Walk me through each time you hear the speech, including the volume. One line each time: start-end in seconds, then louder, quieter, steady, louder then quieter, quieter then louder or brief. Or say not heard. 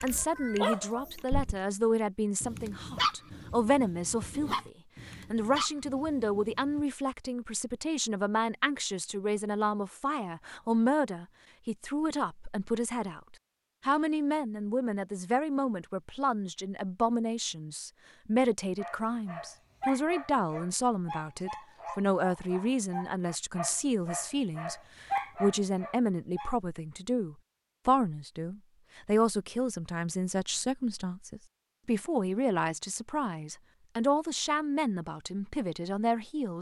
0.0-36.5 steady.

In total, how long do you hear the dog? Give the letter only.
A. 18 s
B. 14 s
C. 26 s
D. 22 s
B.